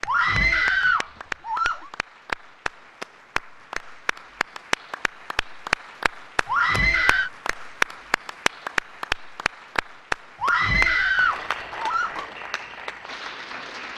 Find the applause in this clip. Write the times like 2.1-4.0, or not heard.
0.0-13.9.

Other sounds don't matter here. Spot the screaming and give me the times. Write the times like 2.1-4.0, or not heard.
0.1-1.9, 6.5-7.3, 10.4-12.2.